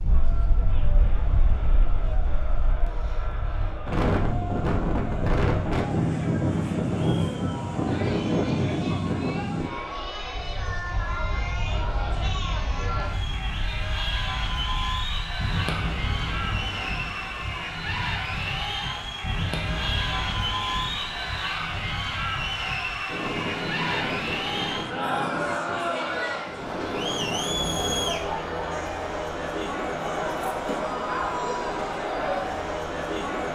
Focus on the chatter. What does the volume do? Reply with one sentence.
The loudness of the chatter goes up.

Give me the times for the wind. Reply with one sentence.
The wind can be heard from 0.0 to 28.2 s.